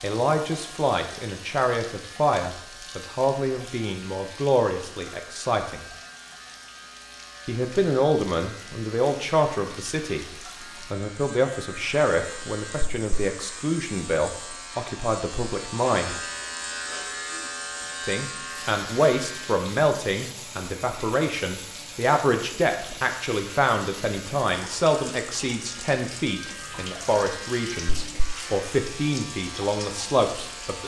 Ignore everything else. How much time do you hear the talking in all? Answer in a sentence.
The talking can be heard for 27 seconds in total.